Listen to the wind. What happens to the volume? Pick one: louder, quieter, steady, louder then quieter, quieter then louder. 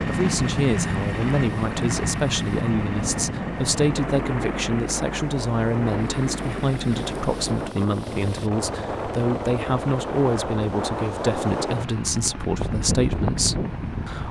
louder.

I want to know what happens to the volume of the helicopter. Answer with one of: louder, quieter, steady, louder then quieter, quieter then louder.
quieter.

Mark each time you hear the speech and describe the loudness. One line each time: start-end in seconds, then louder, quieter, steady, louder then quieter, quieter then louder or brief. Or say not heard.
0.1-14.2 steady.